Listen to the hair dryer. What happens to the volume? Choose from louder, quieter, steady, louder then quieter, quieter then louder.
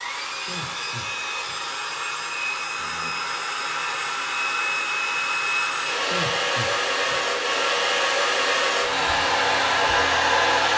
louder.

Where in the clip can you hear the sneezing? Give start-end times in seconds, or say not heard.
0.3-1.6, 6.0-7.2.